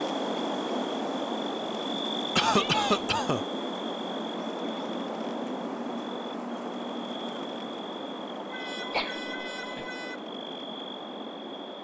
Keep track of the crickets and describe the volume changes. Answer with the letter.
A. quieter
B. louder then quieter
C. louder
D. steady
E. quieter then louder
A.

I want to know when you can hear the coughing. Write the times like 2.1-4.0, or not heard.
2.4-3.5, 8.9-9.8.